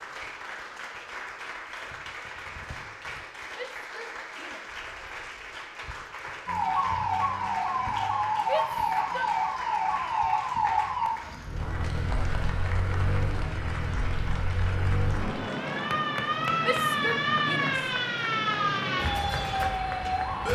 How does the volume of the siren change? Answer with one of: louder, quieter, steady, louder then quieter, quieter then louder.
quieter then louder.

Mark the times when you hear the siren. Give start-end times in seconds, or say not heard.
6.5-20.5.